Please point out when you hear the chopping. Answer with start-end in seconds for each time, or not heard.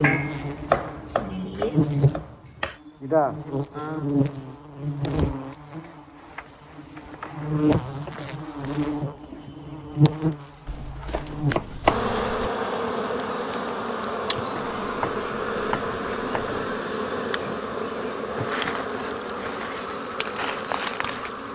0.7-2.8, 10.7-12.5, 14.6-16.8.